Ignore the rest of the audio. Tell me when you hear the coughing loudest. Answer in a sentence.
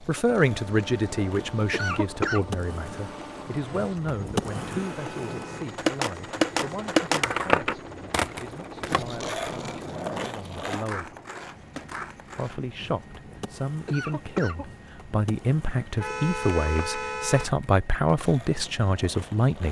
The loudest moment of the coughing is at 2 seconds.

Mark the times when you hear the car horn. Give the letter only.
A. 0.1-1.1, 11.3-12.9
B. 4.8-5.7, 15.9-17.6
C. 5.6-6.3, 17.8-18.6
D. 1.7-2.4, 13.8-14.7
B.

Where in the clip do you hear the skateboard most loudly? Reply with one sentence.
The volume of the skateboard peaks at 7 seconds.